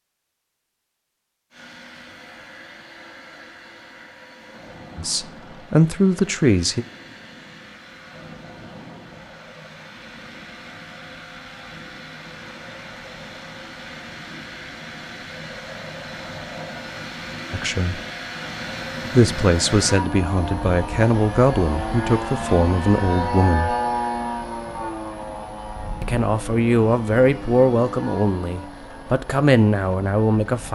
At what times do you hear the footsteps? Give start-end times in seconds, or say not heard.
not heard.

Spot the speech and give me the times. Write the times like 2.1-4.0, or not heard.
5.0-6.8, 17.5-18.0, 19.1-23.8, 26.0-30.6.